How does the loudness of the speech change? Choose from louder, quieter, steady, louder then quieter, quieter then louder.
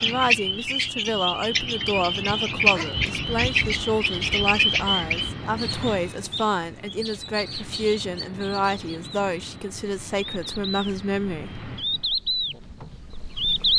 steady.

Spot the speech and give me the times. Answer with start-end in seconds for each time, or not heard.
0.0-11.7.